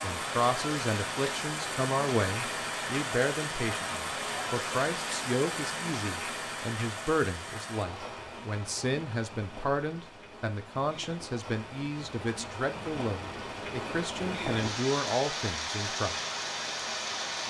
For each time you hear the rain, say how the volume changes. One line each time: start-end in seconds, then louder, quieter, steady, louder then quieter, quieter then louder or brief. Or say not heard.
0.0-17.4 quieter then louder.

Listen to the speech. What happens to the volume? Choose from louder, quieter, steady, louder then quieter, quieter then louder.
steady.